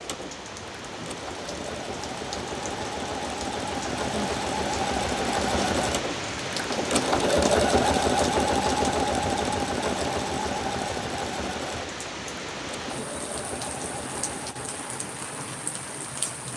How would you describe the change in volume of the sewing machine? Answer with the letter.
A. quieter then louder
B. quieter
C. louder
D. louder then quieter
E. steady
D.